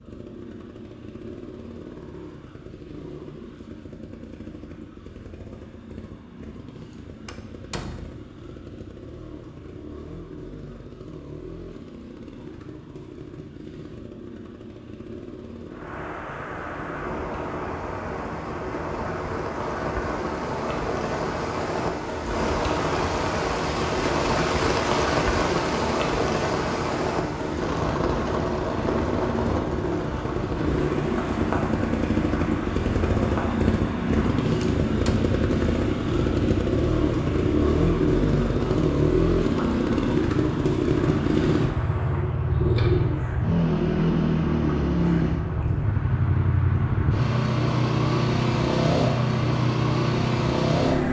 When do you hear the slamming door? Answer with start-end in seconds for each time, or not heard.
7.2-8.3, 34.6-35.4.